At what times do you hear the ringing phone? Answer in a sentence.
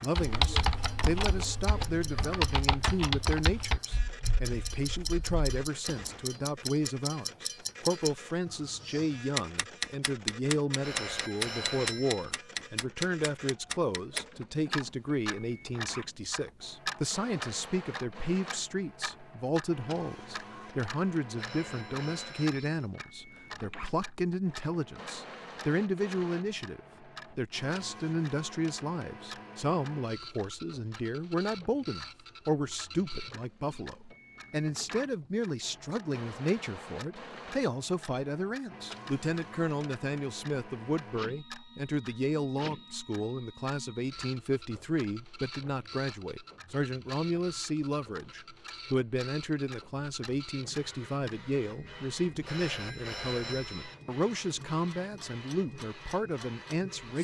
You can hear the ringing phone from 10.8 to 12.3 s, from 21.4 to 22.9 s and from 52.5 to 54.0 s.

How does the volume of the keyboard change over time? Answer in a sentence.
The loudness of the keyboard goes down.